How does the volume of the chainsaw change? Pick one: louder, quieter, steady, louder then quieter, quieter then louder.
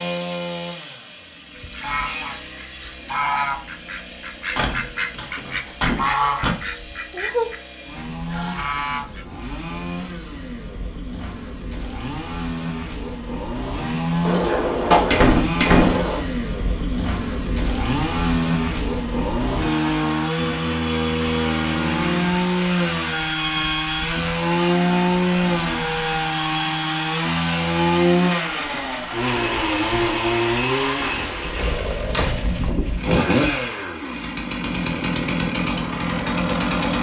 louder.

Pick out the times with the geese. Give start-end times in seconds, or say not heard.
1.6-9.2.